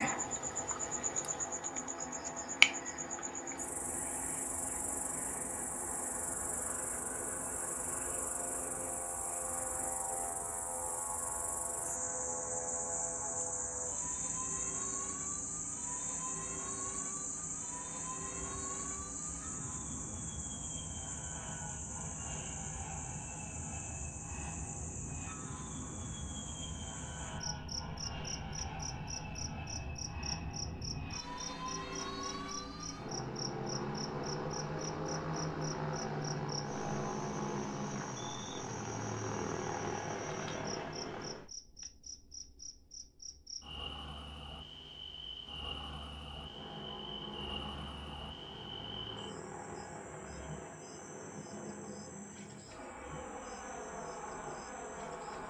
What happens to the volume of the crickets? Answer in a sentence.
The volume of the crickets goes down.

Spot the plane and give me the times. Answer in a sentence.
The plane can be heard from 0.0 to 41.5 s and from 46.3 to 55.4 s.